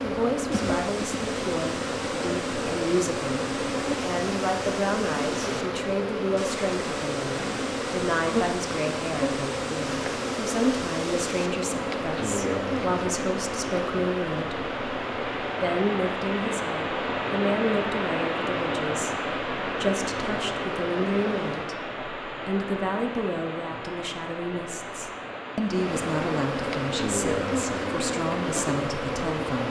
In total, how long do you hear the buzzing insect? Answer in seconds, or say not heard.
26 s.